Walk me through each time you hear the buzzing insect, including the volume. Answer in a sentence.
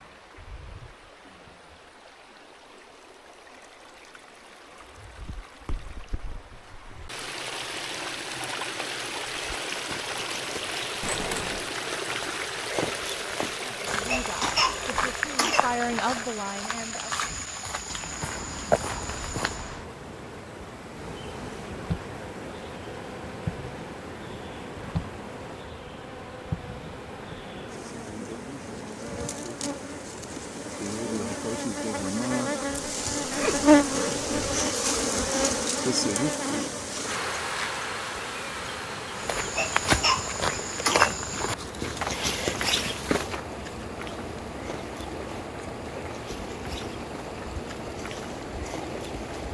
The buzzing insect can be heard from 20.9 to 49.5 s, getting louder then quieter.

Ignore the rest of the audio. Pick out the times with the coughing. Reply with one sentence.
You can hear the coughing from 14.1 to 16.0 s and from 39.5 to 41.2 s.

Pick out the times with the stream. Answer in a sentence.
The stream can be heard from 0.0 to 49.5 s.